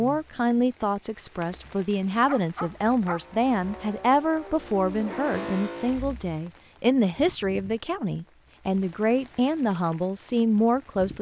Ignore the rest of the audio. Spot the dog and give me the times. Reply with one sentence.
The dog can be heard from 1.6 to 3.2 s.